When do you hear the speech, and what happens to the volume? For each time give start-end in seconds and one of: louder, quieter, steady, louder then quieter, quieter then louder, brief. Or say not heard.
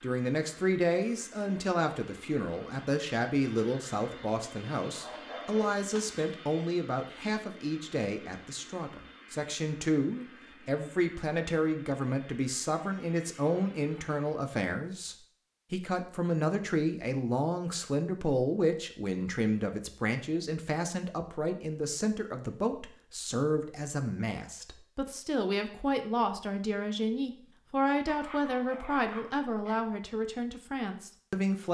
0.0-31.6 steady.